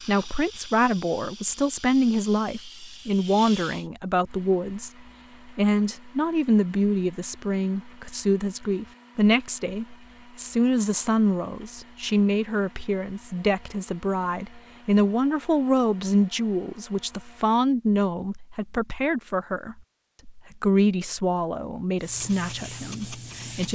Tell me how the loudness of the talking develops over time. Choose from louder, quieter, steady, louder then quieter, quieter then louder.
steady.